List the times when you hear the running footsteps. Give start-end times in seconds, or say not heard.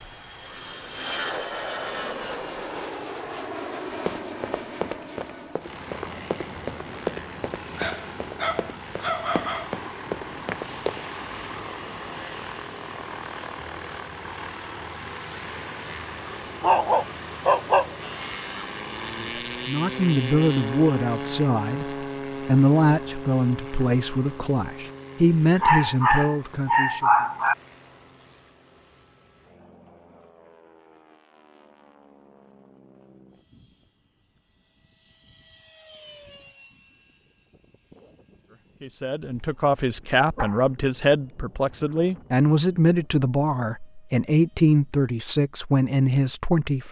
4.0-11.0.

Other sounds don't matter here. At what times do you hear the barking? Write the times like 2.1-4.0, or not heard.
7.8-9.7, 16.6-18.6, 25.6-27.6, 39.2-40.8.